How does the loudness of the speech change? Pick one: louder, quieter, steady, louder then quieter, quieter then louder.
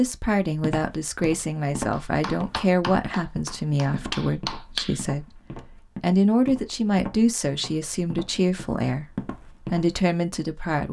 steady.